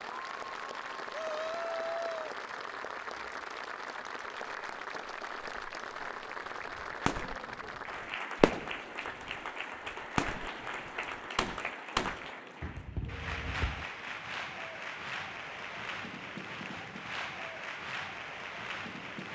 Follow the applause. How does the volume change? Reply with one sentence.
The loudness of the applause stays about the same.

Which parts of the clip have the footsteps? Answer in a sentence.
The footsteps can't be heard in this clip.